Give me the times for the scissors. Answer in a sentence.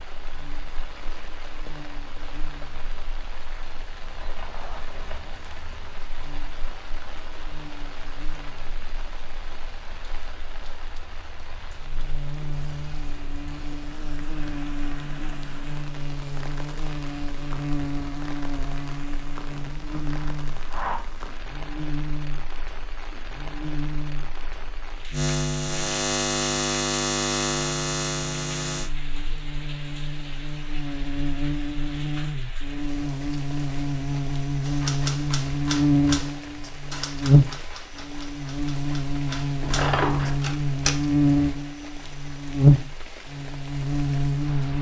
The scissors can be heard from 4.2 to 6.0 s, from 19.5 to 21.0 s and from 39.6 to 40.4 s.